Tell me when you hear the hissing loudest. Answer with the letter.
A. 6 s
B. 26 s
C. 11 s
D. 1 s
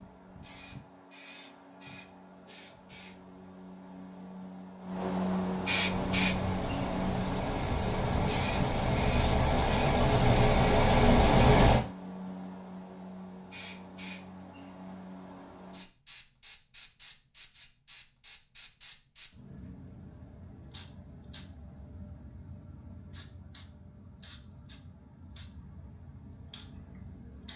A.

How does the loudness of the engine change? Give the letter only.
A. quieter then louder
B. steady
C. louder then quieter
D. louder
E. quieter
D.